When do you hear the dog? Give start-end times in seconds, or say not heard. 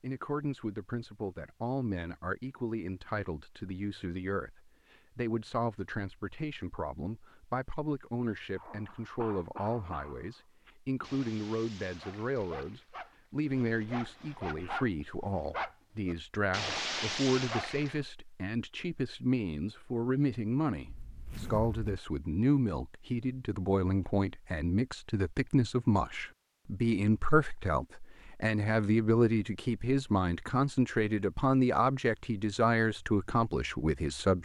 8.6-18.1.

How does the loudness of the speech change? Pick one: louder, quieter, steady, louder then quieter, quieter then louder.
louder.